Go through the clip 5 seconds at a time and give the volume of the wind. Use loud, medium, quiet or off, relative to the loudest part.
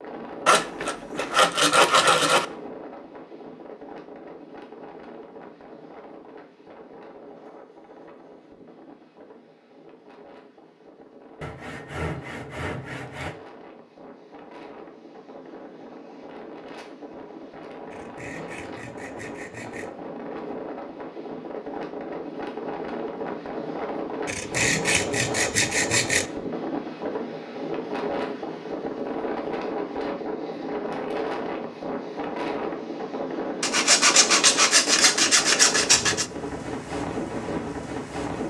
medium, quiet, quiet, medium, loud, loud, loud, loud.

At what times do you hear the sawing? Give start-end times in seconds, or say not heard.
0.5-2.5, 11.4-13.3, 17.9-19.9, 24.2-26.2, 33.6-36.2.